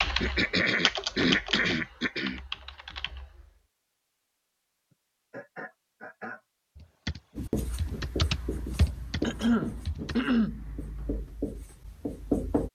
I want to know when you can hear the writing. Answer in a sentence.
You can hear the writing from 7.3 to 12.7 s.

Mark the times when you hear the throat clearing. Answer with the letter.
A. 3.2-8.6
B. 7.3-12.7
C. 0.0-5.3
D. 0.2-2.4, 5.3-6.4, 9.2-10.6
D.